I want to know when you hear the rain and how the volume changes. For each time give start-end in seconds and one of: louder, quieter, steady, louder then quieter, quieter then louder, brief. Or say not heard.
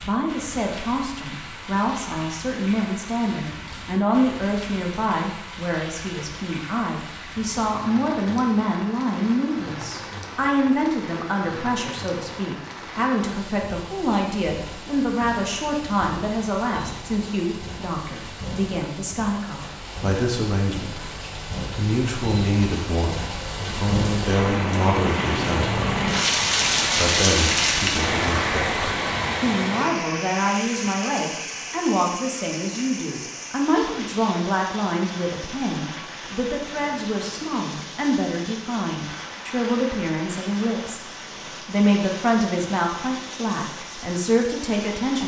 0.0-45.2 louder then quieter.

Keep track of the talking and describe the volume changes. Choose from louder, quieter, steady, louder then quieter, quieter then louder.
steady.